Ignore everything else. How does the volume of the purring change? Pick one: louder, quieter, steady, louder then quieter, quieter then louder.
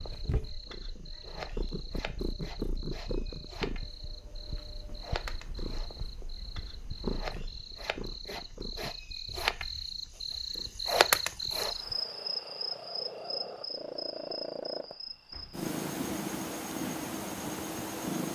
quieter then louder.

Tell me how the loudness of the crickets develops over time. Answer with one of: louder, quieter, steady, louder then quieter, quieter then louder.
louder then quieter.